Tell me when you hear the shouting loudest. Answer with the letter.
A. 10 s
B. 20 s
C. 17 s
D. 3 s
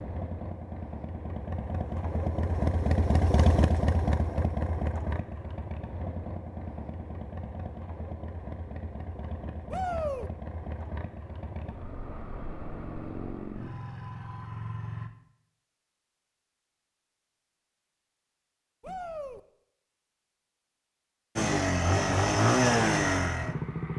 A.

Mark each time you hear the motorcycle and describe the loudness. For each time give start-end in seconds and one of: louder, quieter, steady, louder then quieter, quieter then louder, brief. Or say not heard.
0.0-15.1 quieter
21.4-23.9 brief.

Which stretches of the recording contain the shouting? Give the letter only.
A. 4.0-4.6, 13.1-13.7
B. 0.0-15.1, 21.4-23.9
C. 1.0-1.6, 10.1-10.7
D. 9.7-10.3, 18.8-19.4
D.